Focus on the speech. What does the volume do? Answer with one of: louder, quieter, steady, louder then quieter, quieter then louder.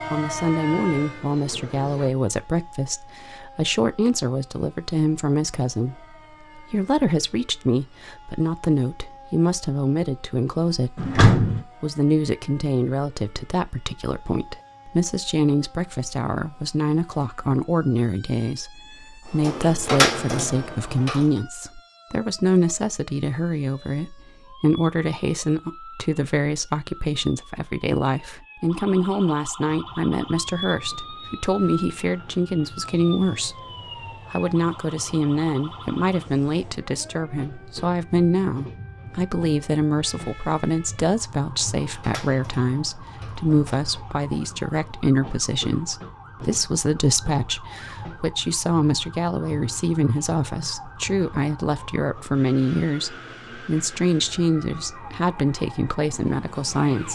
steady.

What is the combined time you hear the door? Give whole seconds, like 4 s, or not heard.
5 s.